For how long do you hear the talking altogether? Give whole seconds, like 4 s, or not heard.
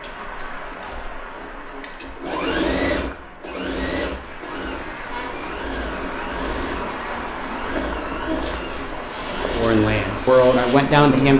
2 s.